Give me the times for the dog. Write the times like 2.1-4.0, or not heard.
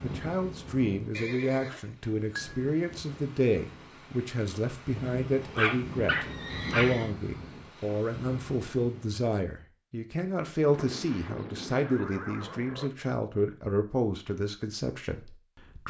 5.3-7.0.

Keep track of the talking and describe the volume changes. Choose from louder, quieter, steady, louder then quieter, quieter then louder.
steady.